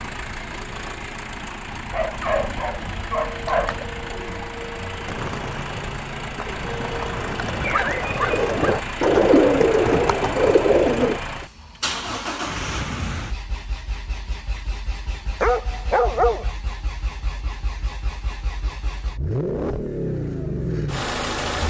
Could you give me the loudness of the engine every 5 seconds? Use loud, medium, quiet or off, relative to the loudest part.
medium, medium, medium, medium, loud.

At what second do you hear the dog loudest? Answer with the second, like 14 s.
16 s.